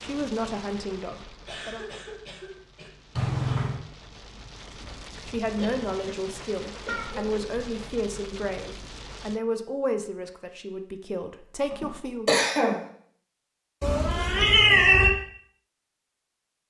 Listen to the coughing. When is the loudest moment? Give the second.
12 s.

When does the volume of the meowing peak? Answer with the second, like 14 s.
15 s.